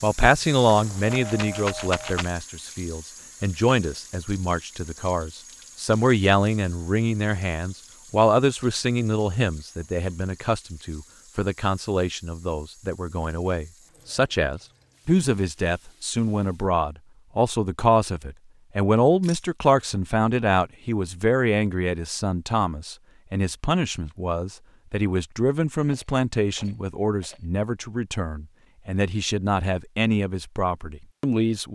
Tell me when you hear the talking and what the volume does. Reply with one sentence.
The talking can be heard from 0.0 to 31.7 s, at a steady volume.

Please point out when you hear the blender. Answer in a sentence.
The blender can't be heard in this clip.